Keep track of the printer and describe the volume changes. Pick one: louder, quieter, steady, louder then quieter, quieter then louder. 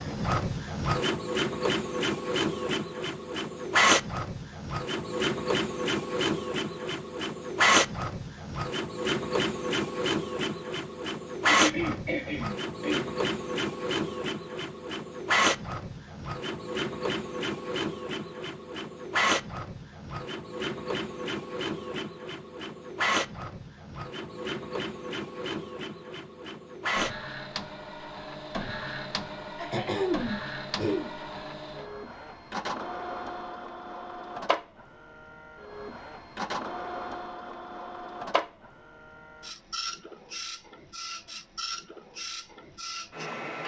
quieter.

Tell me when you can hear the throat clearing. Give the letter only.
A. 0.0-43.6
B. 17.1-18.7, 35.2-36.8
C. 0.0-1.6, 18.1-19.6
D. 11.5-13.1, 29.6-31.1
D.